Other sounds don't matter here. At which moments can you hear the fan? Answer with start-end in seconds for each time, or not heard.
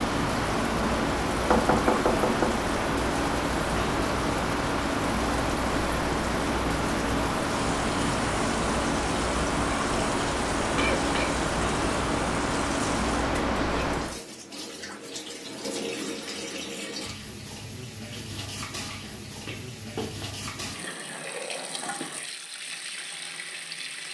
0.0-14.2.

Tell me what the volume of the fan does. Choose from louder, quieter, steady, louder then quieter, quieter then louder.
steady.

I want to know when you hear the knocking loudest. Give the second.
2 s.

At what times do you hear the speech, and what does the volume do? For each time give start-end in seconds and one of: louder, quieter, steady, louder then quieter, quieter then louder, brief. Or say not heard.
not heard.